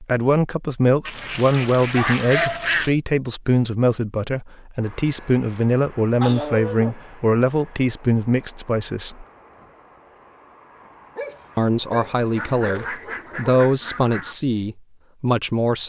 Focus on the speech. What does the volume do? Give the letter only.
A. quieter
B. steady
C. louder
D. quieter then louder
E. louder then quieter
B.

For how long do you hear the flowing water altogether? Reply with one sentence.
You can't hear the flowing water here.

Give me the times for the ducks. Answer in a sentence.
The ducks can be heard from 1.1 to 2.9 s and from 12.3 to 14.3 s.